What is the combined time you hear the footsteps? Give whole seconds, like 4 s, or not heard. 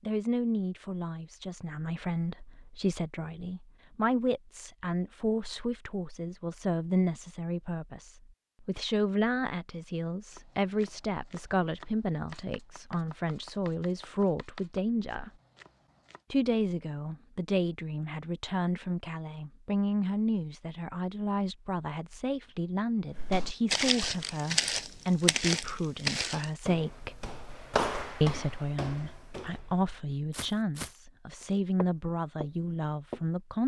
10 s.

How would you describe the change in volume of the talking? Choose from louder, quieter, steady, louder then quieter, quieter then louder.
steady.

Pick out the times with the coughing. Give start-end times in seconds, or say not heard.
not heard.